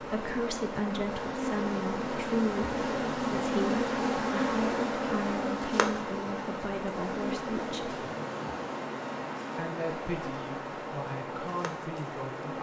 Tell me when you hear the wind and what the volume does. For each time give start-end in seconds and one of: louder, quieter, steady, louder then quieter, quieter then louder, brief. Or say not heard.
0.0-12.5 steady.